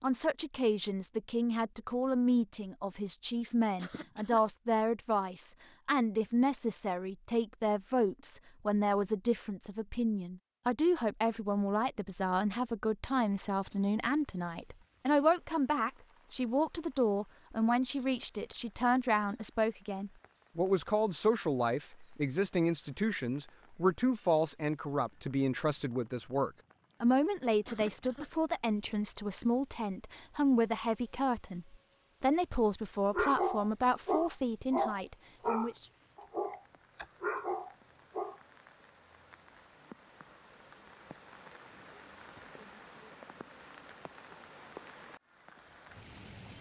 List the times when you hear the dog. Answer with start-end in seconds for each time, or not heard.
33.1-38.4.